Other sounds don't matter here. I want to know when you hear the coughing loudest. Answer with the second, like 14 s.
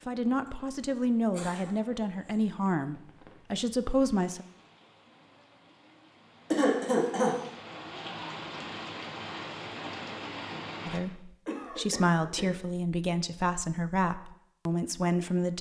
7 s.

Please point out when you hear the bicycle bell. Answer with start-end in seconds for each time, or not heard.
not heard.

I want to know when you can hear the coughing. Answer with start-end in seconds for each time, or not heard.
1.3-1.8, 6.5-7.3, 11.4-12.5.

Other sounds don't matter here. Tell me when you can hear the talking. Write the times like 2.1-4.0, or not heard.
0.1-4.5, 10.8-15.5.